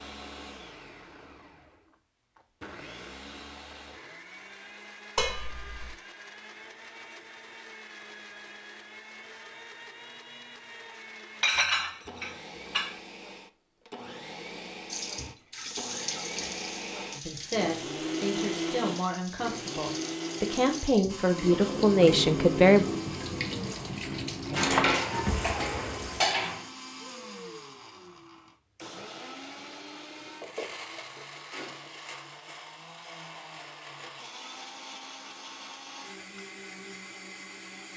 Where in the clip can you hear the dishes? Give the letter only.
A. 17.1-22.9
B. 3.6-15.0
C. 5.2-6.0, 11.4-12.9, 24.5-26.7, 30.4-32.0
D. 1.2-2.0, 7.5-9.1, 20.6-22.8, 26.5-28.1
C.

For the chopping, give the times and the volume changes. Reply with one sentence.
The chopping can't be heard in this clip.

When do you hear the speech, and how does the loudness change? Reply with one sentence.
You can hear the speech from 17.1 to 22.9 s, getting louder.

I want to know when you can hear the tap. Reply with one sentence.
The tap can be heard from 14.9 to 26.2 s.